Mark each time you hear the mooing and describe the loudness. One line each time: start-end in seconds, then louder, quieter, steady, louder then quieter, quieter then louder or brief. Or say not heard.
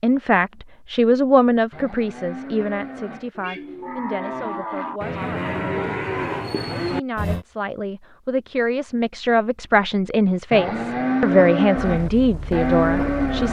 1.7-7.5 louder
10.5-13.4 brief.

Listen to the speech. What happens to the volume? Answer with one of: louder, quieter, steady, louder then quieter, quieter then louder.
quieter then louder.